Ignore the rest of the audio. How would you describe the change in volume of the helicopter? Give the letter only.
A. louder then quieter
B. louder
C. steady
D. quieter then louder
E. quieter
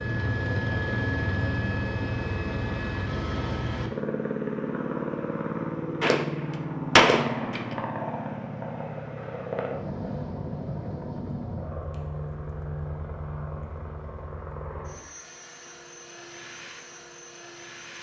E.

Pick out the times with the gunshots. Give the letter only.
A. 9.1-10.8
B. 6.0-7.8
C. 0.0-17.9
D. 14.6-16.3
B.